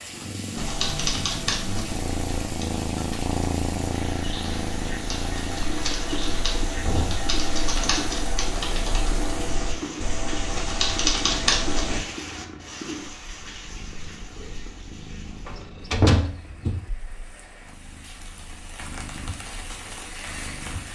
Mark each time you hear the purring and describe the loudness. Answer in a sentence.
The purring can be heard from 0.1 to 20.9 s, getting quieter.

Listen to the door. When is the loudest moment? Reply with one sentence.
The volume of the door peaks at 16 seconds.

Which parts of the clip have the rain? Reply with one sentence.
The rain can be heard from 0.0 to 20.9 s.